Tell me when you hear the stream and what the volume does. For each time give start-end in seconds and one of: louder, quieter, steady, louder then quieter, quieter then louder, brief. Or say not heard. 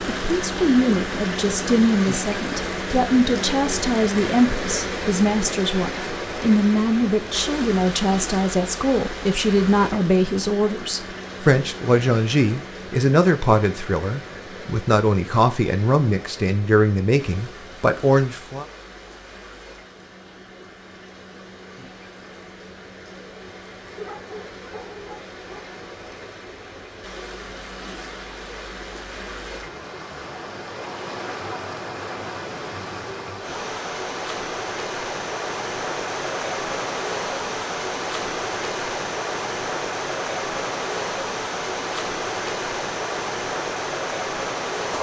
0.0-44.9 quieter then louder.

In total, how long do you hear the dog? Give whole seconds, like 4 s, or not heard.
2 s.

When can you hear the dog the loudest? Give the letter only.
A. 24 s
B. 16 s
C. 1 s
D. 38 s
A.